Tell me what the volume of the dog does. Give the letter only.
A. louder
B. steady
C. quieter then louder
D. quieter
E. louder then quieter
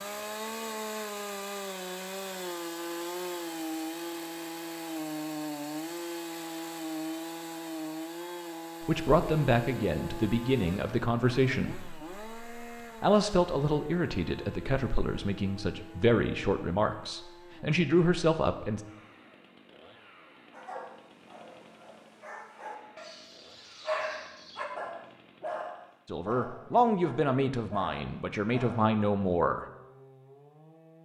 E.